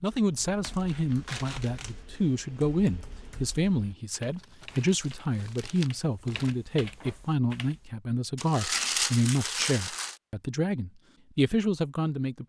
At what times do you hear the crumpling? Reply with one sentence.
The crumpling can be heard from 0.8 to 2.0 s, from 4.3 to 6.5 s and from 8.3 to 10.2 s.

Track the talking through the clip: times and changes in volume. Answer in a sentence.
The talking can be heard from 0.0 to 12.4 s, at a steady volume.